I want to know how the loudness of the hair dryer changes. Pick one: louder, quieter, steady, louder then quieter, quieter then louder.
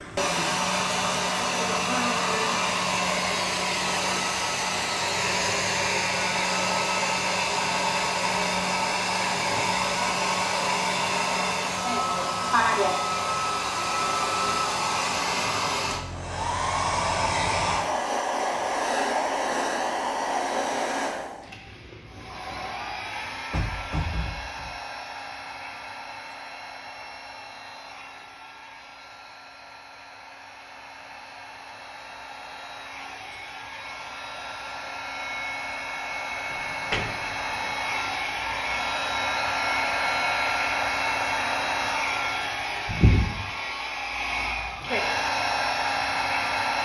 quieter then louder.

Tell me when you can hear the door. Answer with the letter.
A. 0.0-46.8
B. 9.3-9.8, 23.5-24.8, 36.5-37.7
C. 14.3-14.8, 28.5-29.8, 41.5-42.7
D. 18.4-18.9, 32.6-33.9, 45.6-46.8
B.